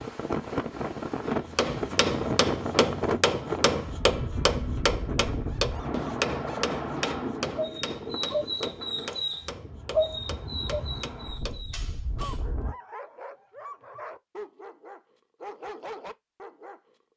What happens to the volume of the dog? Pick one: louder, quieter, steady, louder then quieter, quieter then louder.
louder then quieter.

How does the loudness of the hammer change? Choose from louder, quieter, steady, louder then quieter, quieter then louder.
quieter.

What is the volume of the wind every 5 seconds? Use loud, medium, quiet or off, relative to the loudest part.
loud, loud, medium, off.